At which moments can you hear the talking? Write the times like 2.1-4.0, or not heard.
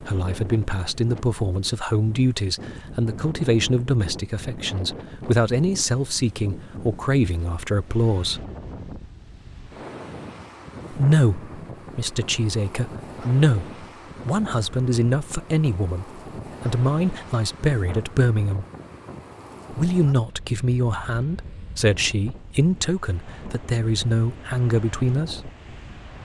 0.0-8.4, 10.9-18.6, 19.7-25.5.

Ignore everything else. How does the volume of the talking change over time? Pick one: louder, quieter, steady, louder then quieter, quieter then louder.
steady.